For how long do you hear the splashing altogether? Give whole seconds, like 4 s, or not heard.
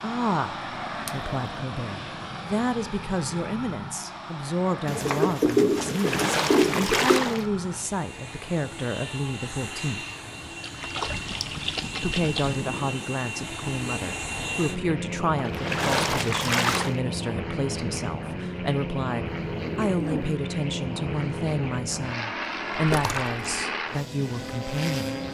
6 s.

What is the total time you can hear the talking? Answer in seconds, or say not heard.
23 s.